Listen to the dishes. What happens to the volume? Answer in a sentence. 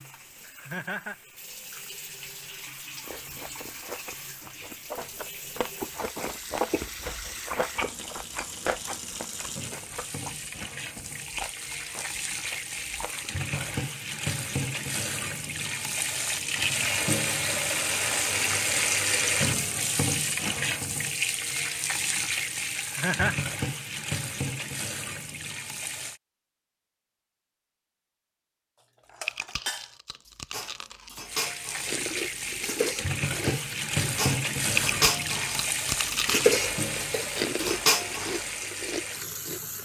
The volume of the dishes goes up.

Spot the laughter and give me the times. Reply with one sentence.
You can hear the laughter from 0.4 to 1.1 s and from 22.8 to 23.4 s.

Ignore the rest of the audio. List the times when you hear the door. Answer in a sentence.
The door can't be heard in this clip.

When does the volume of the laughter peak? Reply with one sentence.
The loudest moment of the laughter is at 23 seconds.